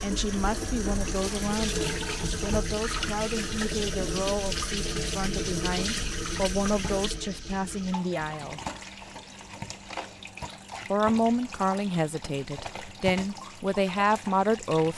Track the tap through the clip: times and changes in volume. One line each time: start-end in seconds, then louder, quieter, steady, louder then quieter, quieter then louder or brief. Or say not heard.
0.0-14.9 quieter.